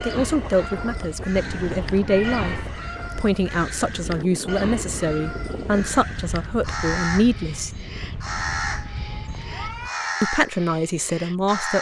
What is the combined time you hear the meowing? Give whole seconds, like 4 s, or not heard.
3 s.